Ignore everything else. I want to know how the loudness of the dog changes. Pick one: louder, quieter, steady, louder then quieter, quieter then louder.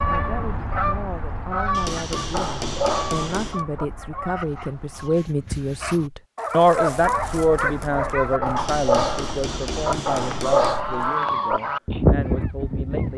quieter then louder.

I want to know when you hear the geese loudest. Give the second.
12 s.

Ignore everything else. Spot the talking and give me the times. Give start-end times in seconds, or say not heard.
0.1-13.1.